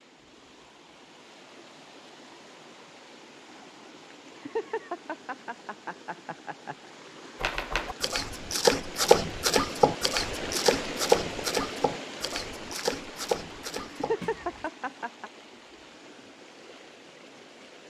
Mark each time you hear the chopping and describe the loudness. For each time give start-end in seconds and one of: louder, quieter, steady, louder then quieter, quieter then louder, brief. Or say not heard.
7.4-14.7 quieter.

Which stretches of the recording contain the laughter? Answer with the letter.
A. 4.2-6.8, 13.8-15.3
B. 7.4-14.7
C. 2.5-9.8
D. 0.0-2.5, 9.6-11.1
A.